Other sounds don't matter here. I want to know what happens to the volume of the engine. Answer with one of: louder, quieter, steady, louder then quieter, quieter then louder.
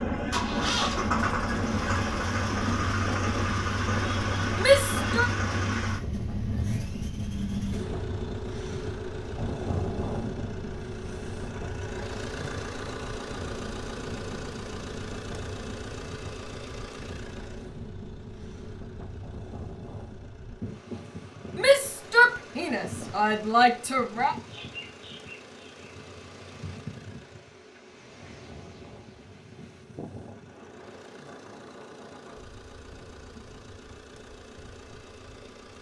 quieter.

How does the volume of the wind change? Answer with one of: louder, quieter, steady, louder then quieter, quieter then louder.
quieter.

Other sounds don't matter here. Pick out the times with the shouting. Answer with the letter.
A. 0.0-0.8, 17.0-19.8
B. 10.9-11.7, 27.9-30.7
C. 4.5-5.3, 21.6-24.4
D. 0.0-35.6
C.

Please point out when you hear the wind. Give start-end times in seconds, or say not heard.
0.0-35.6.